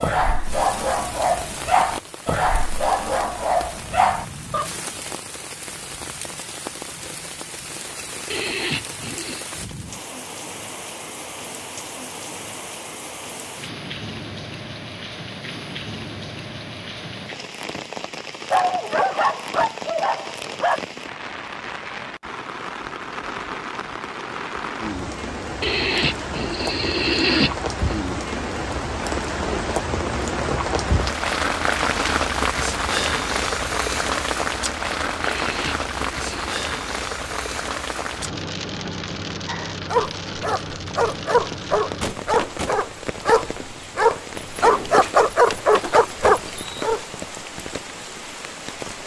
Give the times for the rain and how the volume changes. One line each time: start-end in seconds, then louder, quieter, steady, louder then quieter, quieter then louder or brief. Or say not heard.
0.1-49.0 louder then quieter.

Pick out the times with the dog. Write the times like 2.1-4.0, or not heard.
0.0-4.7, 18.5-20.8, 39.5-47.0.